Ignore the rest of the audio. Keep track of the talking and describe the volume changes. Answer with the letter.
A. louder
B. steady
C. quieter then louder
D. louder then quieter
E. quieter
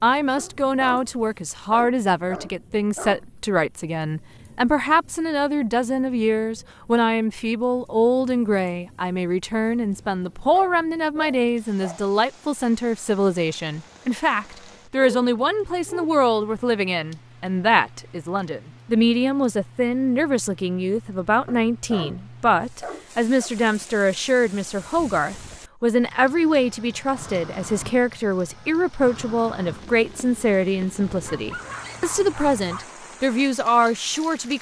B.